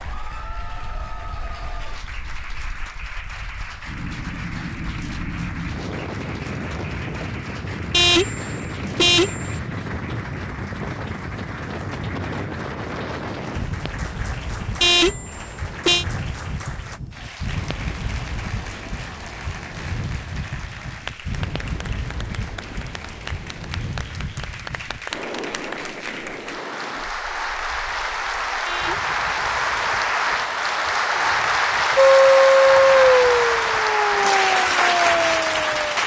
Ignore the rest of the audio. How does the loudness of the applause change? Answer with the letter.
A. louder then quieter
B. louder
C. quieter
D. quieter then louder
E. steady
B.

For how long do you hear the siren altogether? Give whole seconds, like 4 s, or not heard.
4 s.